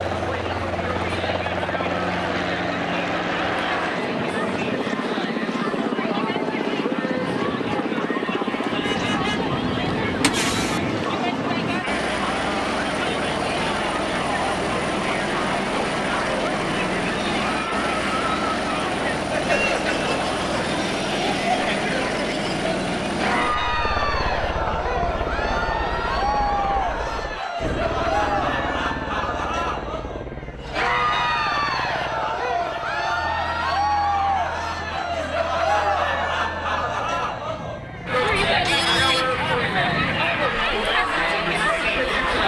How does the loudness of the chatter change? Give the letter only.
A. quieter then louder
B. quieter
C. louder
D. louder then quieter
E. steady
C.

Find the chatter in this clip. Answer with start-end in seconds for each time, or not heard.
0.0-42.4.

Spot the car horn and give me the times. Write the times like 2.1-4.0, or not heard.
8.8-10.8, 38.3-40.2.